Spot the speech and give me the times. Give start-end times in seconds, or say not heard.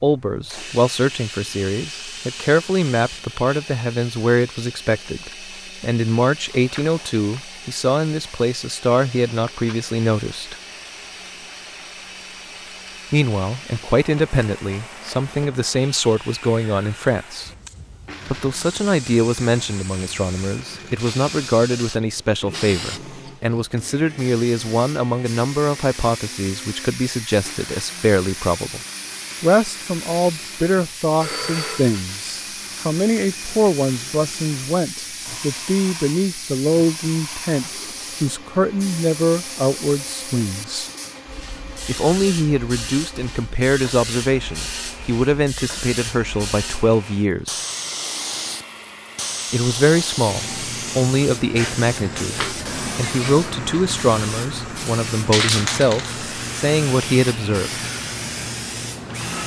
0.0-10.6, 13.1-17.5, 18.2-28.8, 29.4-40.9, 41.9-47.6, 49.5-57.8.